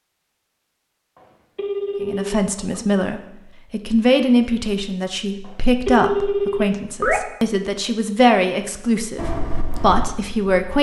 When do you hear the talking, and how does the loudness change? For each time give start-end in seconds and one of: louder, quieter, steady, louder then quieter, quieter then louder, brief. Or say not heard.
2.0-10.7 steady.